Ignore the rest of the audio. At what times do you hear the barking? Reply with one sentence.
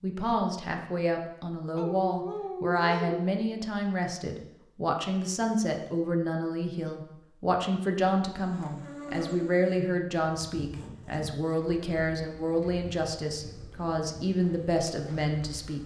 The barking can be heard from 1.8 to 3.2 s.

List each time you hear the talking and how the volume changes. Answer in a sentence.
The talking can be heard from 0.0 to 15.8 s, at a steady volume.